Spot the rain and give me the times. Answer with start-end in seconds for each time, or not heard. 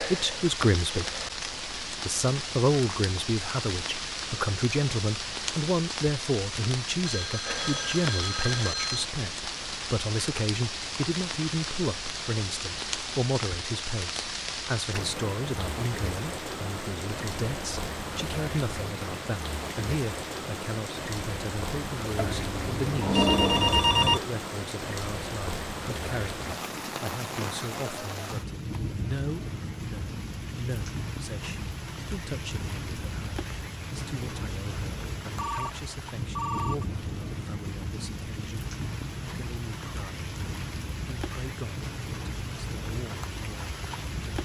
0.0-44.3.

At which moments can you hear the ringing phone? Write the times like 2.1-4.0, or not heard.
7.0-9.1, 22.1-24.2, 35.4-36.9.